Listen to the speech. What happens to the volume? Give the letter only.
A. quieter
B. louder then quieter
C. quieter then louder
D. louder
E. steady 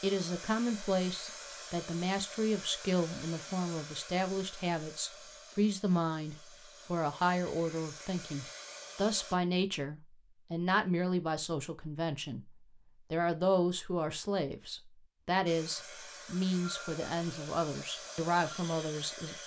E.